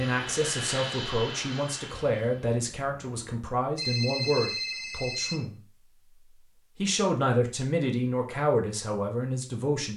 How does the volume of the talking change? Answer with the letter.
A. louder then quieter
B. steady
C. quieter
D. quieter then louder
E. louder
B.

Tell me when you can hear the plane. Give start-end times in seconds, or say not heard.
0.0-3.5.